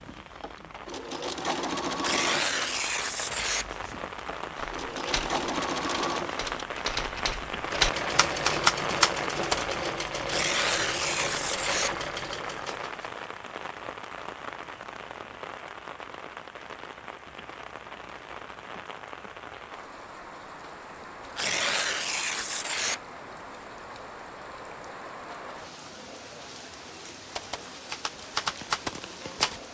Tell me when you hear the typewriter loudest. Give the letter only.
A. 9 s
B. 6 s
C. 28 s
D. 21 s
A.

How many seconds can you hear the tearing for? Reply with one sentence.
The tearing can be heard for 5 seconds in total.